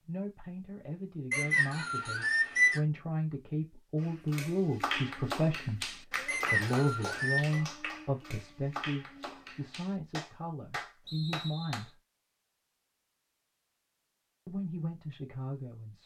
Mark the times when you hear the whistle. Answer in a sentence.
The whistle can be heard from 1.3 to 2.8 s, from 6.2 to 7.6 s and from 11.1 to 11.9 s.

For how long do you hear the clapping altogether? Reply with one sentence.
You can hear the clapping for 8 seconds altogether.